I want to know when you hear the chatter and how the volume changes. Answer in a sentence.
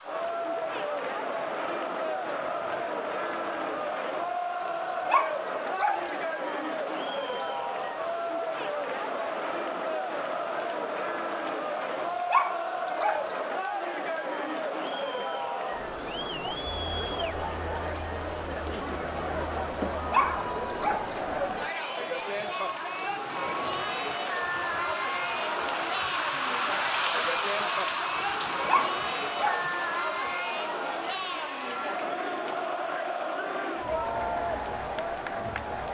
The chatter can be heard from 0.0 to 35.8 s, at a steady volume.